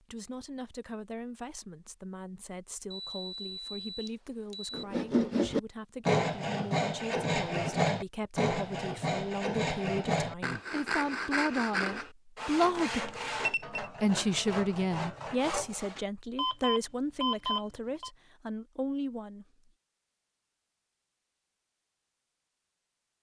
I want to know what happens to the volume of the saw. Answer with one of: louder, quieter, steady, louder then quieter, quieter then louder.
quieter.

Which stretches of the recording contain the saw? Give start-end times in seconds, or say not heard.
4.7-16.1.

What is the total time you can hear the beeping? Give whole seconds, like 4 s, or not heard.
5 s.